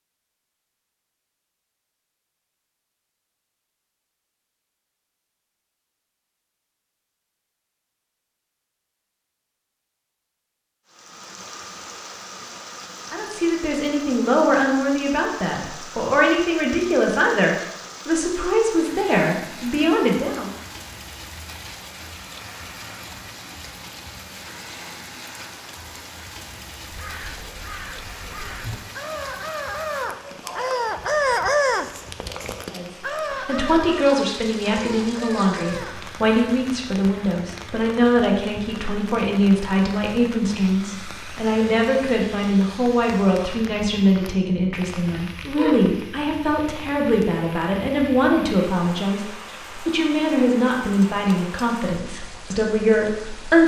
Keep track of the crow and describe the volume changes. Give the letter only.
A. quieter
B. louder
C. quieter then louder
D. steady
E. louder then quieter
E.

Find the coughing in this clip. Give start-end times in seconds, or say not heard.
45.1-45.8.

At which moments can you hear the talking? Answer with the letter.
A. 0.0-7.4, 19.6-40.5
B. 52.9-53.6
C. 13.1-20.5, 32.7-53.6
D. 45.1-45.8
C.